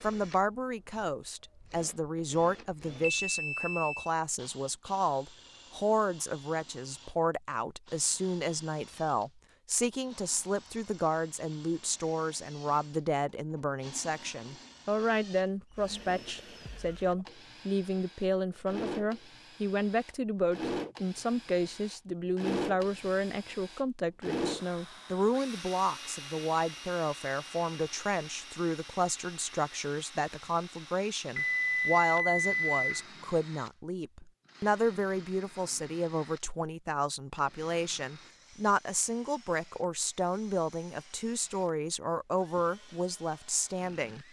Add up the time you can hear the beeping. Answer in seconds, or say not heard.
3 s.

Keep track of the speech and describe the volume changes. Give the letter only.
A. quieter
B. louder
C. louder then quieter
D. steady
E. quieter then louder
D.